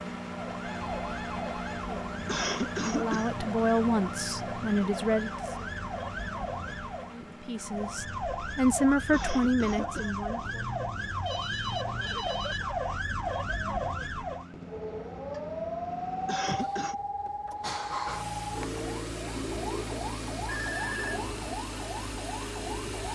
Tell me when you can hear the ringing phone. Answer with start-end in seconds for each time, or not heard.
0.6-1.9, 11.2-12.7, 20.4-21.3.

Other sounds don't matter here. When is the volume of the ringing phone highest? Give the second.
21 s.